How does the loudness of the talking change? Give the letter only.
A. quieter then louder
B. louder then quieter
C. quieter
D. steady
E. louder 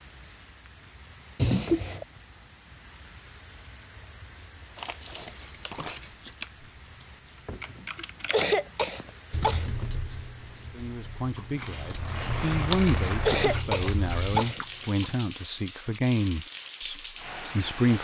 B.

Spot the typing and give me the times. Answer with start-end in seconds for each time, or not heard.
7.6-14.3.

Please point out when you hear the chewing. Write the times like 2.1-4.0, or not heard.
4.8-7.5, 11.3-15.2.